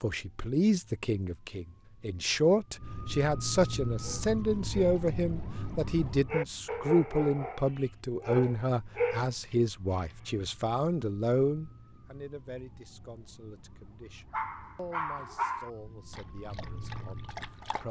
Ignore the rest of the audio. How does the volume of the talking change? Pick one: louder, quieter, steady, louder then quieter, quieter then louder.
quieter.